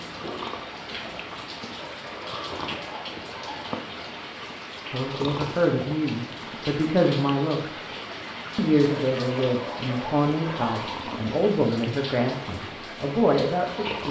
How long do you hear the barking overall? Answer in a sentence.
The barking can be heard for 4 seconds in total.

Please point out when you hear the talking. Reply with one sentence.
You can hear the talking from 4.9 to 7.8 s and from 8.6 to 14.0 s.